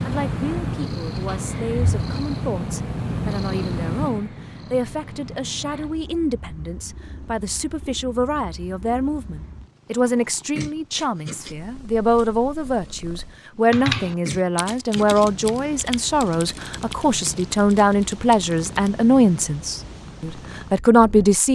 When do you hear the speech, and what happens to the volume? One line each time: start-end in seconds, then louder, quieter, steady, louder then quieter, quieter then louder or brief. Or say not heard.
0.1-21.5 louder.